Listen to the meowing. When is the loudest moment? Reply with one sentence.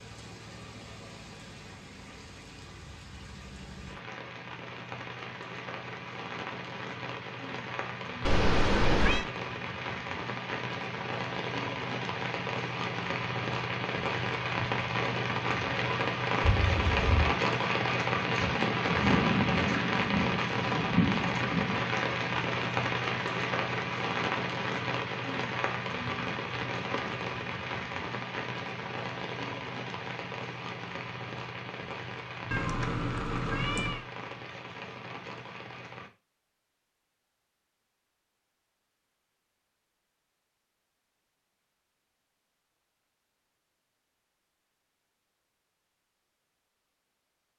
The volume of the meowing peaks at 9 seconds.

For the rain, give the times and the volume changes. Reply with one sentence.
The rain can be heard from 0.0 to 36.1 s, getting louder then quieter.